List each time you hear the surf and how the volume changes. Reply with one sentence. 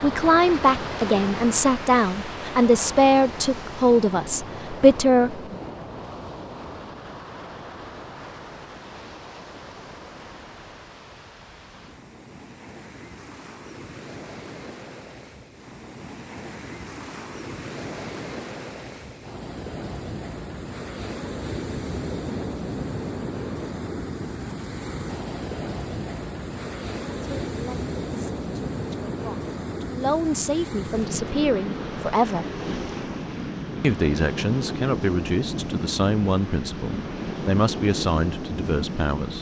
You can hear the surf from 0.0 to 39.3 s, getting quieter then louder.